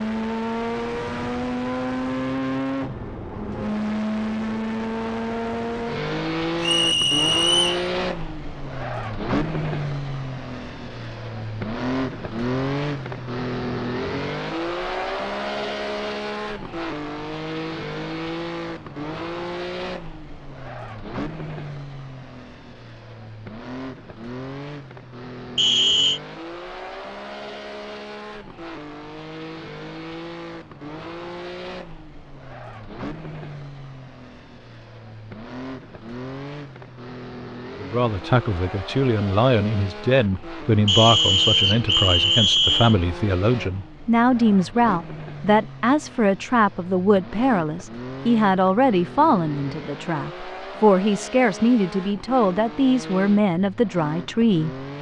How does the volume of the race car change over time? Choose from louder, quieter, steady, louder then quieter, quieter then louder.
quieter.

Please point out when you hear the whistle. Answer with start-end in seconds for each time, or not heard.
6.6-7.8, 25.6-26.2, 40.9-43.0.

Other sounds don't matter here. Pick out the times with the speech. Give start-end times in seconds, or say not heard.
37.8-54.9.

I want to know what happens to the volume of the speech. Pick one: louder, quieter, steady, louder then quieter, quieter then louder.
steady.